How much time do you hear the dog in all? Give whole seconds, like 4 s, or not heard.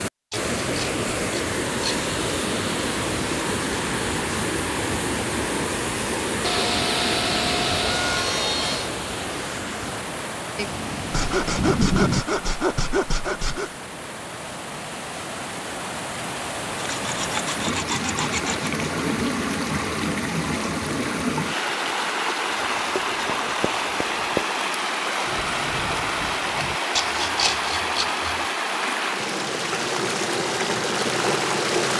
not heard.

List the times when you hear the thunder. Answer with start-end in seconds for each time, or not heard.
10.6-12.2, 25.2-26.8.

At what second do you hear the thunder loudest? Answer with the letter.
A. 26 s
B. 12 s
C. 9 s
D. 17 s
B.